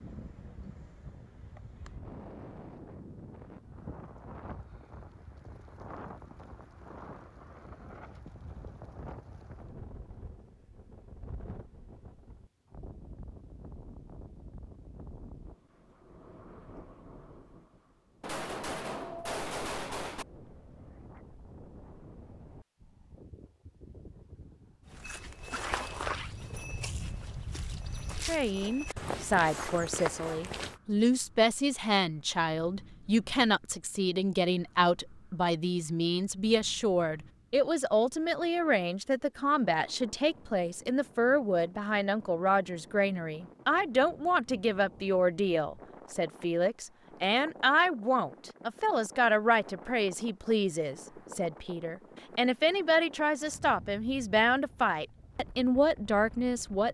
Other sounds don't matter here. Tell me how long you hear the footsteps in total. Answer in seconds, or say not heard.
6 s.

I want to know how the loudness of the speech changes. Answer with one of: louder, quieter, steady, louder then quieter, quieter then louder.
steady.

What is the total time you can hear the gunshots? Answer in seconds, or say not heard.
2 s.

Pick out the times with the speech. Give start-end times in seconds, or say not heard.
28.2-56.9.